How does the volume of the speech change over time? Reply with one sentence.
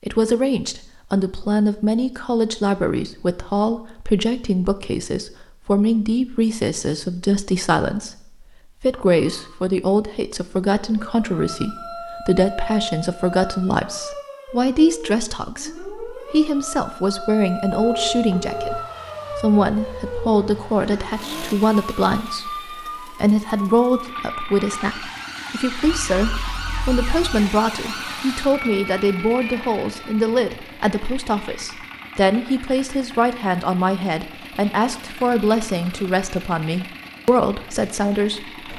The volume of the speech stays about the same.